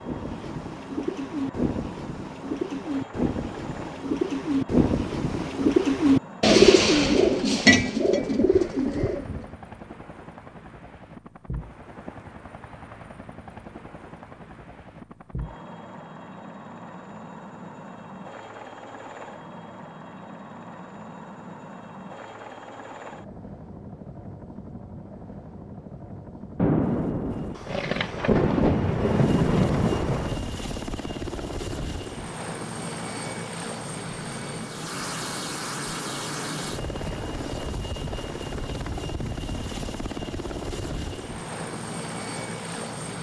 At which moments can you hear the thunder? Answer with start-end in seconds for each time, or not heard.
26.6-30.4.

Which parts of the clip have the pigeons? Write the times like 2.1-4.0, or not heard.
0.0-9.5.